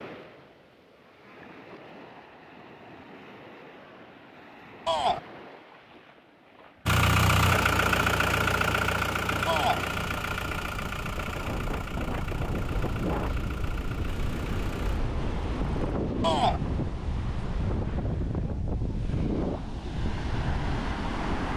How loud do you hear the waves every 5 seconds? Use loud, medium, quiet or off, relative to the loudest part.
quiet, quiet, loud, loud, loud.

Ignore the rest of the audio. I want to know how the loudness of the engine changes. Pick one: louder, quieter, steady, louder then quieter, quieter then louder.
quieter.